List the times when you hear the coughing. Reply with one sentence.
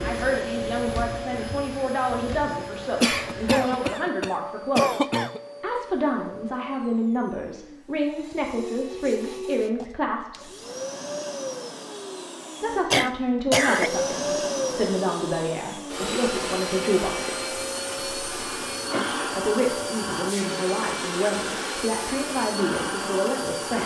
The coughing can be heard from 3.0 to 5.4 s, from 12.9 to 13.9 s and from 17.9 to 19.4 s.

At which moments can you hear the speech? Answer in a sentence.
You can hear the speech from 0.0 to 10.5 s, from 12.6 to 17.5 s and from 19.1 to 23.8 s.